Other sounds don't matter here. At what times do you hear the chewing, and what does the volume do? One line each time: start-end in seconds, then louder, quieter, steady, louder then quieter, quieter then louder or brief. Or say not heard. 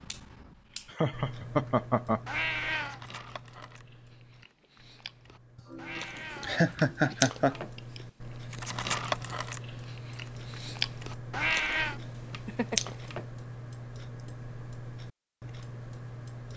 2.8-13.2 louder.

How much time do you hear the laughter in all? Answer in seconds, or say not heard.
4 s.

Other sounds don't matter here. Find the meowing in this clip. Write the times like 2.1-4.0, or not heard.
2.2-3.0, 5.8-6.8, 11.3-12.0.